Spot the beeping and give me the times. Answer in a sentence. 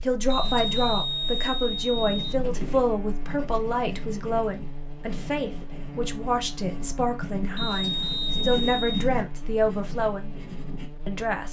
You can hear the beeping from 0.3 to 2.4 s and from 7.5 to 9.1 s.